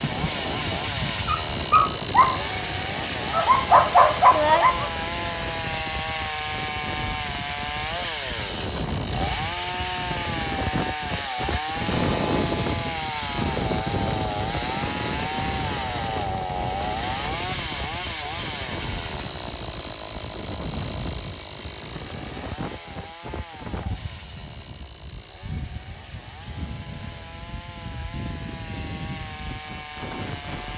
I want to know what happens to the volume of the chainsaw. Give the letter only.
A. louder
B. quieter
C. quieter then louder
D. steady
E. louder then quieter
B.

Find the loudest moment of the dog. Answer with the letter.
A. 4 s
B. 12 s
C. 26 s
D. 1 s
A.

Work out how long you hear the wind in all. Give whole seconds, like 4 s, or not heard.
31 s.